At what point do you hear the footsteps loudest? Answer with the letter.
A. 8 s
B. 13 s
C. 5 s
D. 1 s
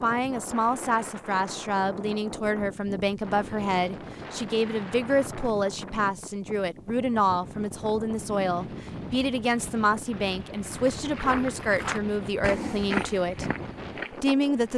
B.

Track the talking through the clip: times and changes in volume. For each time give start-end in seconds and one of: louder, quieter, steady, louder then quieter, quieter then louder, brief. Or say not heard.
0.0-13.4 steady
14.1-14.7 brief.